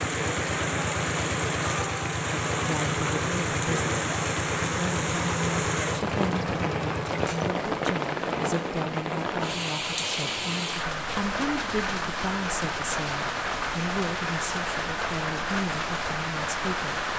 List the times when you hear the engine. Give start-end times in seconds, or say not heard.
0.0-7.5.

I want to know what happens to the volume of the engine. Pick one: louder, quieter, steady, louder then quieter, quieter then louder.
steady.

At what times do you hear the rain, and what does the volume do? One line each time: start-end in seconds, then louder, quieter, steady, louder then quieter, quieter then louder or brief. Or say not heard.
0.0-17.1 steady.